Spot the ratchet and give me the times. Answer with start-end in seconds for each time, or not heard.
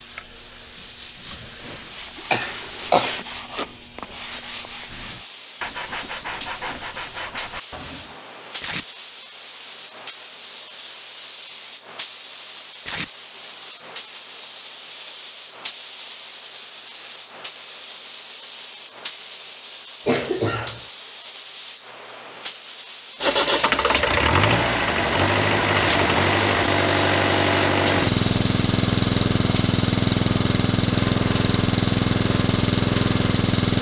not heard.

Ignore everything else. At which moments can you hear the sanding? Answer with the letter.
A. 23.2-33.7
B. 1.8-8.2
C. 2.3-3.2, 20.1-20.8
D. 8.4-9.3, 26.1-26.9
B.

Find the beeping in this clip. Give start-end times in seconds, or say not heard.
not heard.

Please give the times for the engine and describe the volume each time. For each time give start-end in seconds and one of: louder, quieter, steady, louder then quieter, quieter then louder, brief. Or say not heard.
23.2-33.7 steady.